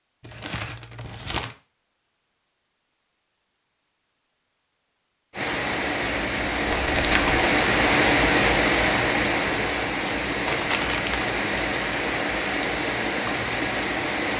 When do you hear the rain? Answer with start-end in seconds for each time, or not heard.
5.3-14.3.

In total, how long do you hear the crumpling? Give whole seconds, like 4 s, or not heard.
3 s.